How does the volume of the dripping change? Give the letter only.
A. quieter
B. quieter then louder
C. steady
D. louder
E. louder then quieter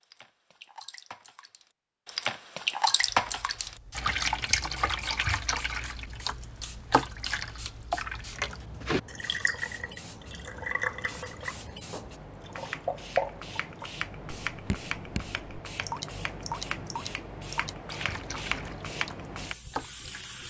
A.